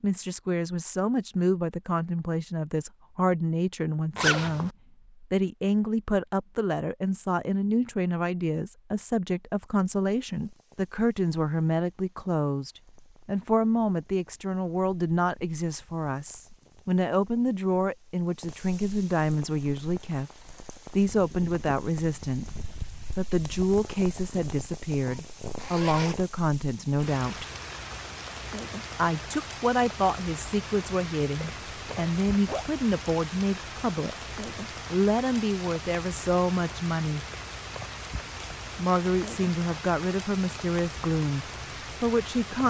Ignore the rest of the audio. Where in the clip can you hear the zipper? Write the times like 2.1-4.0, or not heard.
4.2-4.7, 25.6-26.3, 31.4-32.6.